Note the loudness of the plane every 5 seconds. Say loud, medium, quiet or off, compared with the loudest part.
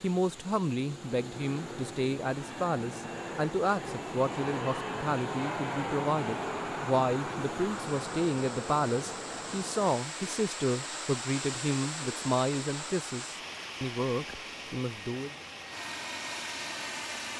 loud, loud, medium, loud.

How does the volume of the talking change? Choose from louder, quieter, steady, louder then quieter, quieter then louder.
steady.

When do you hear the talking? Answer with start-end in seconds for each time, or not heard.
0.0-15.3.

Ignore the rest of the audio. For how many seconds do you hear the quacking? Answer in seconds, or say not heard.
not heard.